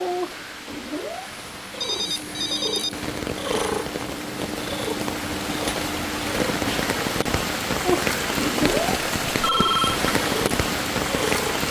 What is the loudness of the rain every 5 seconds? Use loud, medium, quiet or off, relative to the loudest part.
medium, loud, loud.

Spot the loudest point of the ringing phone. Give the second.
10 s.